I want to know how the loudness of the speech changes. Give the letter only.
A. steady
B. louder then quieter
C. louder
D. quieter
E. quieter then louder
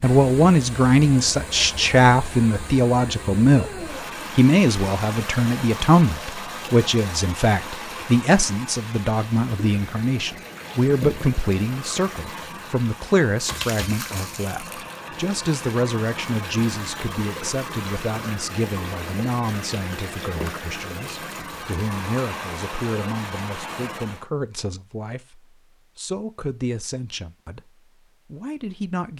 D.